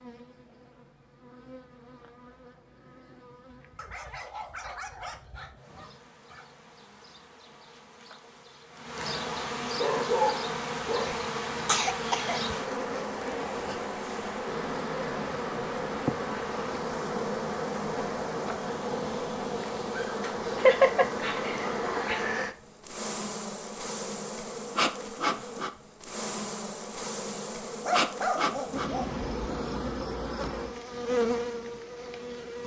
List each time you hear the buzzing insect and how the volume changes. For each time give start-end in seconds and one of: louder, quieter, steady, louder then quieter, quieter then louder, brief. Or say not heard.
0.0-32.6 louder.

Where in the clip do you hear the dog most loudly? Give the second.
10 s.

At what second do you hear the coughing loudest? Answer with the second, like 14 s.
21 s.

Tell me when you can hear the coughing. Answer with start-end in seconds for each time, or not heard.
11.7-12.4, 20.6-22.1.